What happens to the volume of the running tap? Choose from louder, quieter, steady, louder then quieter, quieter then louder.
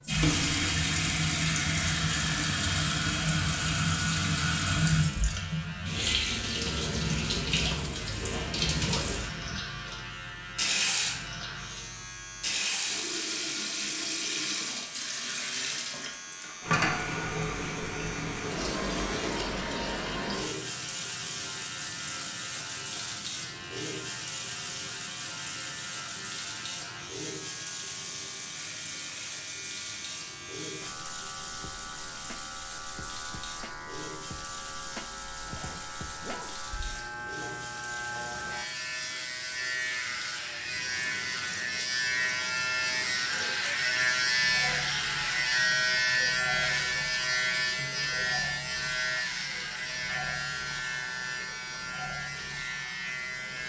quieter.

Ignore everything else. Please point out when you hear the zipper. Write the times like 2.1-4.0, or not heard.
7.6-9.6, 35.5-36.5.